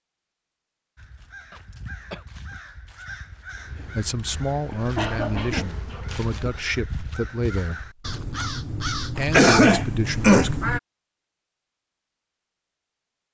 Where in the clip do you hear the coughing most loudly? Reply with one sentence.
The volume of the coughing peaks at 10 seconds.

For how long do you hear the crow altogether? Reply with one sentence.
You can hear the crow for 10 seconds altogether.